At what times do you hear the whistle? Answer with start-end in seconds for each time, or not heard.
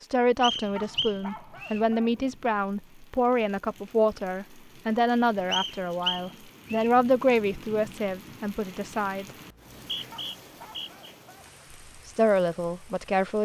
0.4-1.9, 5.5-6.9, 9.4-11.1.